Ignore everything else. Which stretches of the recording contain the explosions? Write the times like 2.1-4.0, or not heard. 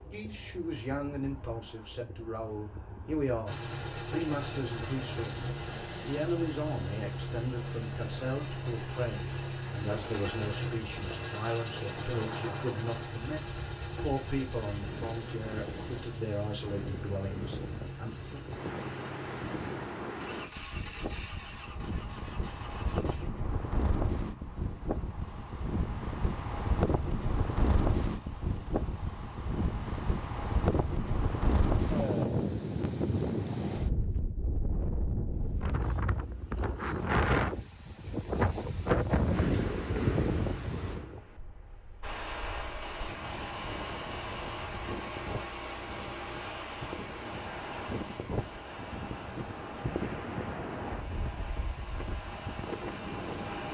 not heard.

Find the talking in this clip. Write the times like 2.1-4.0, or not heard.
0.0-18.4.